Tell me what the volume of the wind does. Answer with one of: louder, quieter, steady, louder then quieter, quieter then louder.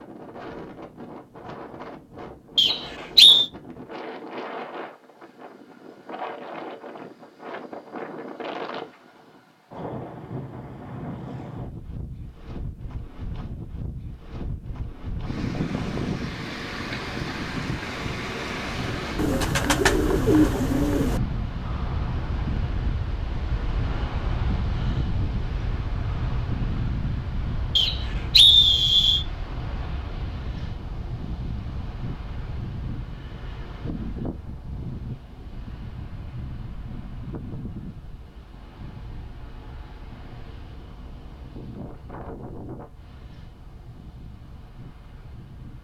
louder then quieter.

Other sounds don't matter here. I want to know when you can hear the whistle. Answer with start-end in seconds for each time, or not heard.
2.5-3.5, 27.8-29.2.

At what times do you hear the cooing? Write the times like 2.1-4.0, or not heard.
19.1-21.2.